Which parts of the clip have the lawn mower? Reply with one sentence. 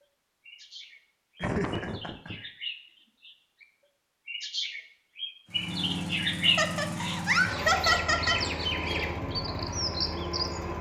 You can hear the lawn mower from 5.5 to 10.7 s.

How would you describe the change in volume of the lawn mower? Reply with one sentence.
The loudness of the lawn mower stays about the same.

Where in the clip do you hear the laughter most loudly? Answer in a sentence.
The loudest moment of the laughter is at 8 seconds.